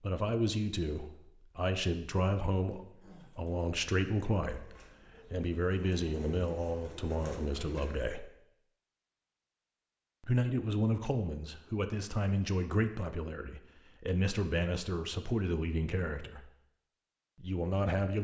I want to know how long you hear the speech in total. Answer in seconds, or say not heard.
15 s.